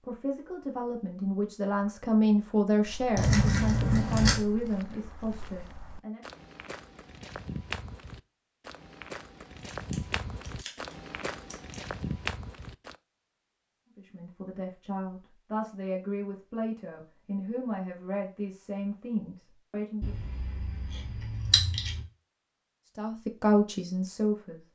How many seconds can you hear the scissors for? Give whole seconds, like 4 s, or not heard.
5 s.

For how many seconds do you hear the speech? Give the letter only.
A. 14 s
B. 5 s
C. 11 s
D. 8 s
A.